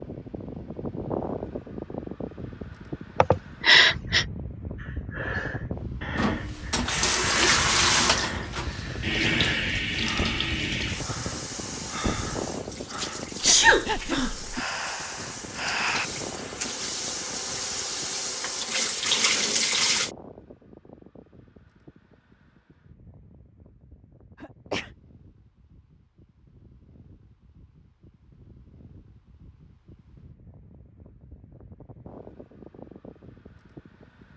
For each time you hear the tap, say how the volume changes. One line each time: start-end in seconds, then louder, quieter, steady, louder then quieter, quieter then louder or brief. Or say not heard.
6.2-20.1 quieter then louder.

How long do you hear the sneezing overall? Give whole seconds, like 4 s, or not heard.
3 s.